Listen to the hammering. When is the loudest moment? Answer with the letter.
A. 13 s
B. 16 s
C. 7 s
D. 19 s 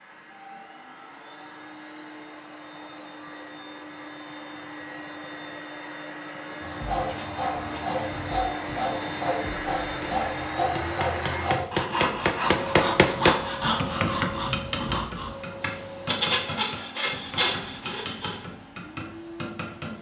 A.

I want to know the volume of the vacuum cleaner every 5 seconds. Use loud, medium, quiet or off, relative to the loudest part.
medium, loud, loud, medium.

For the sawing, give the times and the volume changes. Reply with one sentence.
You can hear the sawing from 6.6 to 18.4 s, at a steady volume.